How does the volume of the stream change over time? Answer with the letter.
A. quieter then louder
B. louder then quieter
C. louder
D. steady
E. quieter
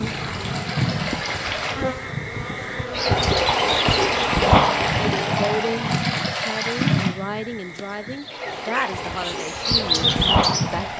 B.